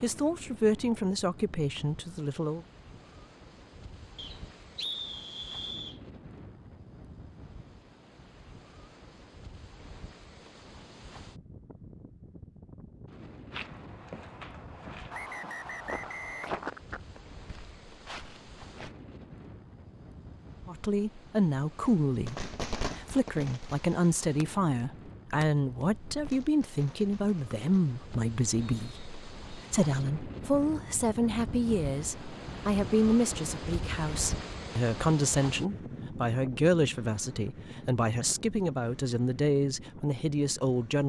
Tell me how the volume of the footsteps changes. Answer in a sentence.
The volume of the footsteps goes up, then down.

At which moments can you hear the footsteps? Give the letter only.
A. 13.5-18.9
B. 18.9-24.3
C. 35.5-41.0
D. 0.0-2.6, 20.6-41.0
A.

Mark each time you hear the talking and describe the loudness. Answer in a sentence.
The talking can be heard briefly from 0.0 to 2.6 s; and from 20.6 to 41.0 s, at a steady volume.